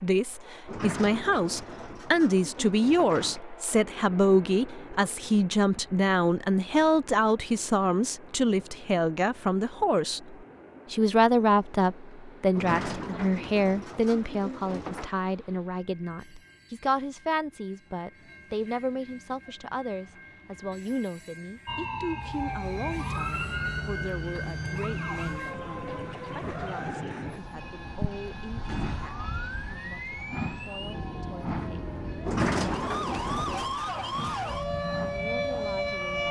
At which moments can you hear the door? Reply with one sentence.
You can hear the door from 0.7 to 3.5 s, from 12.5 to 15.1 s and from 32.2 to 33.9 s.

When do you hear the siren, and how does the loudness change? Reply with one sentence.
You can hear the siren from 21.6 to 36.2 s, getting quieter then louder.